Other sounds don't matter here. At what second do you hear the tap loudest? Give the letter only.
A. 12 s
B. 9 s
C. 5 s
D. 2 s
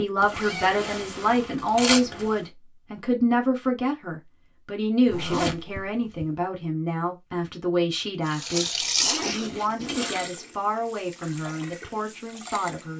B.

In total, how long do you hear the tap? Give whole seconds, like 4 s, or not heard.
5 s.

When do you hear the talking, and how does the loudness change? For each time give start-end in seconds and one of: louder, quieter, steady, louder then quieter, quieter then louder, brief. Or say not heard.
0.0-12.9 quieter.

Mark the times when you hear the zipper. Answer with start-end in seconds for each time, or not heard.
0.2-2.4, 5.0-6.2, 8.9-10.2.